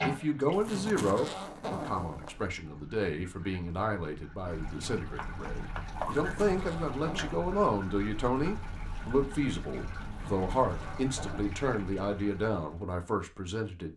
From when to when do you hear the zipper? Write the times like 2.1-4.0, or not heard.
0.5-2.5, 5.9-7.4, 10.1-11.6.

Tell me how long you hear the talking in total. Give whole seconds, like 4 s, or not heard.
14 s.